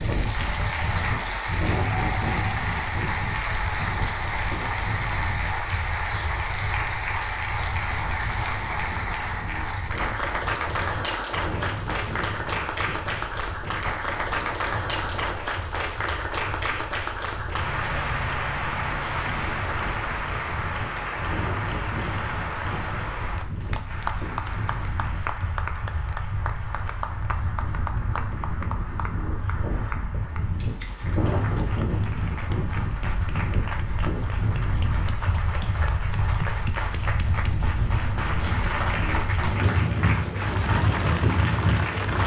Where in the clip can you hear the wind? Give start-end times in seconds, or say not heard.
0.0-42.2.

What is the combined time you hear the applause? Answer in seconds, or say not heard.
42 s.